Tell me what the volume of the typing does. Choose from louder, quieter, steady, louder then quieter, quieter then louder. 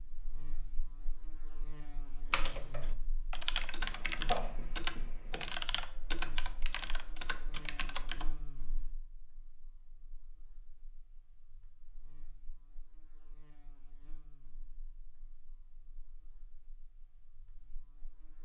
quieter.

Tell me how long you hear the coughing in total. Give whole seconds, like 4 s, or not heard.
2 s.